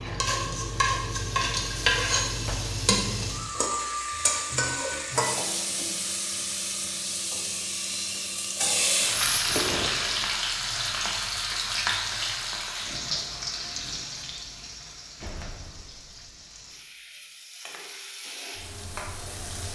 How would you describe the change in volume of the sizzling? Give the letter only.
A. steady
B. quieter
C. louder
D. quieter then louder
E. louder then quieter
B.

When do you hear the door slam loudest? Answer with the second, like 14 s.
10 s.